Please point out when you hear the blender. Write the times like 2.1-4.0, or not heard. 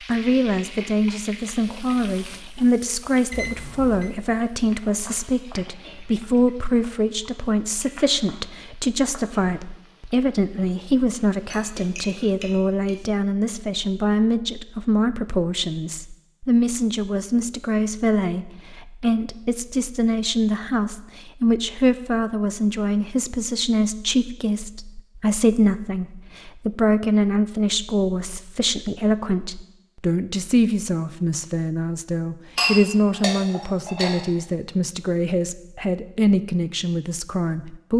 not heard.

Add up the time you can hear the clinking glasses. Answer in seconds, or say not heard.
3 s.